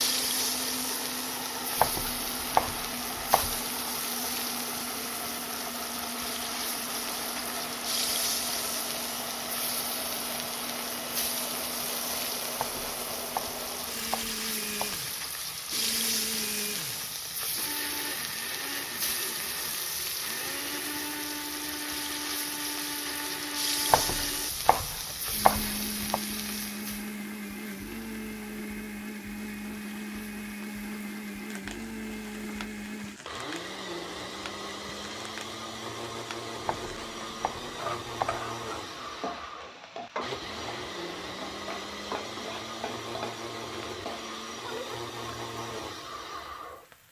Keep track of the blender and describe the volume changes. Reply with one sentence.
The volume of the blender stays about the same.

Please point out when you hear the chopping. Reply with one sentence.
The chopping can be heard from 1.8 to 3.6 s, from 12.6 to 15.0 s, from 23.9 to 26.2 s and from 36.6 to 38.4 s.